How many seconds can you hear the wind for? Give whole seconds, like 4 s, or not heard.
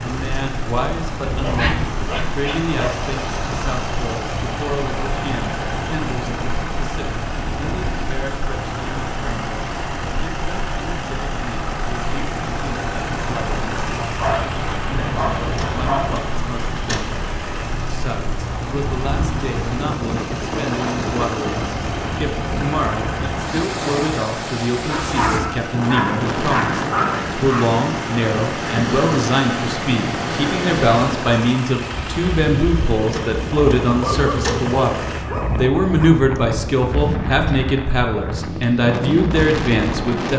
40 s.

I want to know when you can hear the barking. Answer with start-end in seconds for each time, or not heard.
1.4-3.0, 14.2-16.1, 24.9-27.7, 34.0-36.1.